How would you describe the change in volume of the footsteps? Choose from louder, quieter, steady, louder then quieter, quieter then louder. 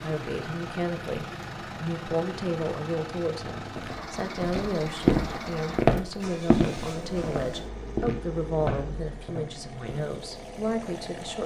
quieter.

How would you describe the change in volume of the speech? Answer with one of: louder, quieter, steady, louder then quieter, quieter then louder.
steady.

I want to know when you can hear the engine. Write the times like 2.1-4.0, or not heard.
0.0-11.4.